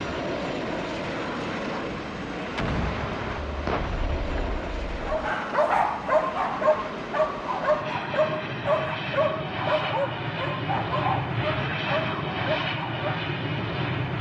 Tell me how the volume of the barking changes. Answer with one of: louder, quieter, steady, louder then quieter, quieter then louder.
quieter.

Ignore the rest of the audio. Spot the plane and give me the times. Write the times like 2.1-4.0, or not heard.
0.0-14.1.